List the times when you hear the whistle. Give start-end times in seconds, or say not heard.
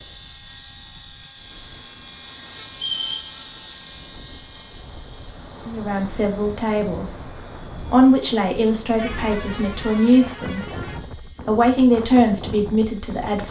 2.7-3.3.